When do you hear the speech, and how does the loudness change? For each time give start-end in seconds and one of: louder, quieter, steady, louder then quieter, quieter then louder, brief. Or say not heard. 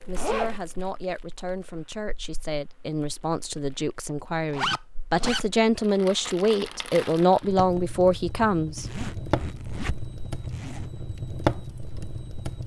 0.1-8.9 louder.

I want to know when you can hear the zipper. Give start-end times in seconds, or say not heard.
0.1-0.6, 4.5-5.5, 8.8-10.9.